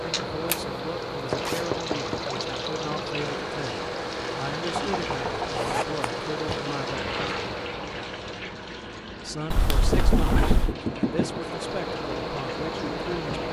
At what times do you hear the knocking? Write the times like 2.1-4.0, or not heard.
1.3-2.2, 4.7-5.7, 9.9-11.4.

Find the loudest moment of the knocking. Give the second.
10 s.